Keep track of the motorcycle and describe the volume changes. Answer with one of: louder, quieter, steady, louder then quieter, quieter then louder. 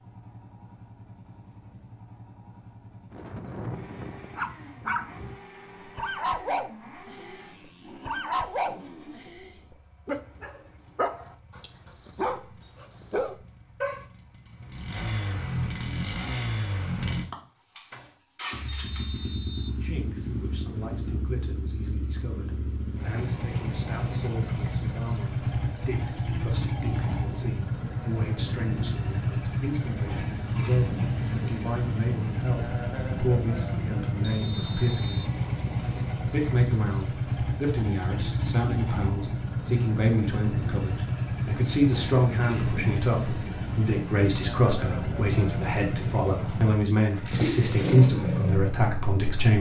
louder.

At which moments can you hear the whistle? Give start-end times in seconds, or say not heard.
18.6-19.8, 34.2-35.4.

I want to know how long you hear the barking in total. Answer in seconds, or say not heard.
11 s.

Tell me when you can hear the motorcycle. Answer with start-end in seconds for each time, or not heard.
0.0-49.5.